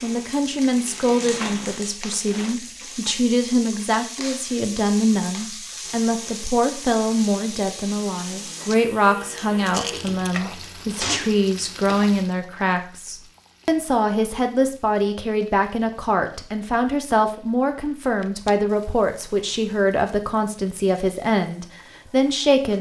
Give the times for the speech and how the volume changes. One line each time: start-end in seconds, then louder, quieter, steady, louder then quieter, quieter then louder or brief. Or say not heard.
0.0-22.7 steady.